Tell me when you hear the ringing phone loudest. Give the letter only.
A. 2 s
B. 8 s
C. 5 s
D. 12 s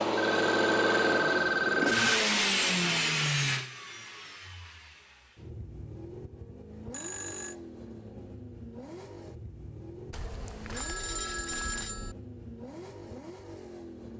A.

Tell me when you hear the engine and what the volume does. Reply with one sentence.
The engine can be heard from 0.0 to 14.1 s, getting quieter.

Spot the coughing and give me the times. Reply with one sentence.
You can't hear the coughing here.